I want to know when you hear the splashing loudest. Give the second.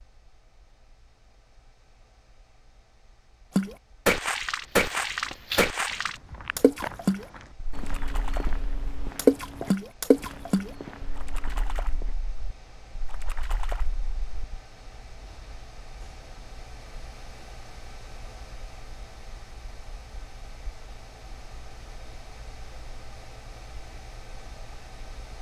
9 s.